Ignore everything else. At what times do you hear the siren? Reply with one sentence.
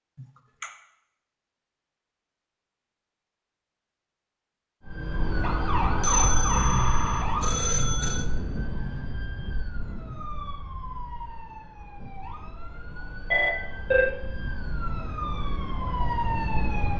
You can hear the siren from 4.8 to 16.9 s.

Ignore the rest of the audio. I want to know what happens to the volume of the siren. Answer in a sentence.
The loudness of the siren goes down, then up.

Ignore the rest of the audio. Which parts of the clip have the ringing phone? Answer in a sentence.
You can hear the ringing phone from 0.1 to 0.7 s, from 6.0 to 8.2 s and from 13.3 to 14.2 s.